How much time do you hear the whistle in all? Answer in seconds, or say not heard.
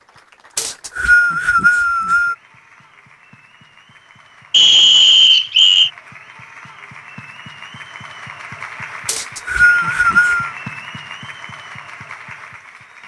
5 s.